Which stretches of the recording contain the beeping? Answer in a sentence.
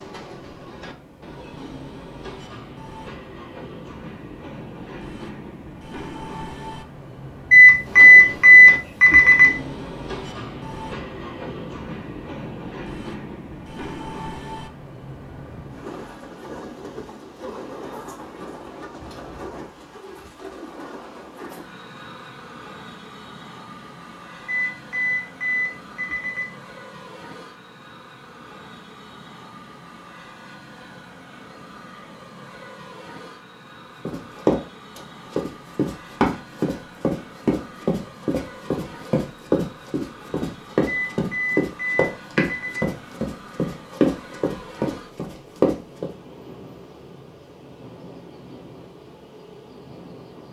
The beeping can be heard from 7.5 to 9.5 s, from 24.4 to 26.5 s and from 40.9 to 42.9 s.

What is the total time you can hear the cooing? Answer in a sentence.
You can't hear the cooing here.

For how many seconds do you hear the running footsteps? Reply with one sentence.
You can hear the running footsteps for 12 seconds altogether.